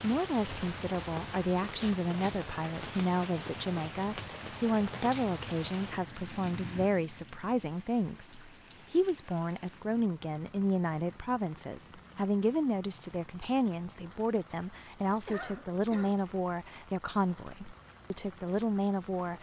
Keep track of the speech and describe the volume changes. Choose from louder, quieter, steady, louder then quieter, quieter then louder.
steady.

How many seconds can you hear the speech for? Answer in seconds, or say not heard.
19 s.